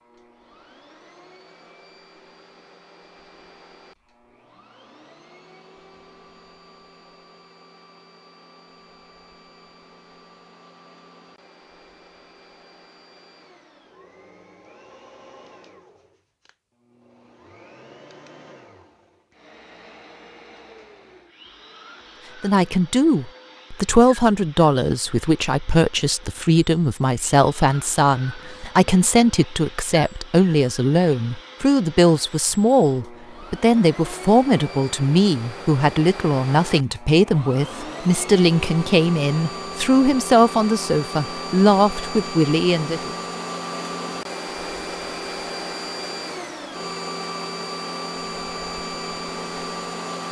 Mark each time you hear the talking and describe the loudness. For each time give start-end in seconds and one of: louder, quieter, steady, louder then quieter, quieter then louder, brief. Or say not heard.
22.4-43.1 steady.